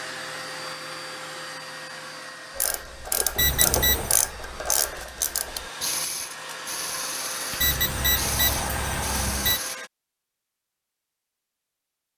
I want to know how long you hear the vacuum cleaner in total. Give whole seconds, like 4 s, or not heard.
10 s.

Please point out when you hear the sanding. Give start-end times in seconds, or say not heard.
not heard.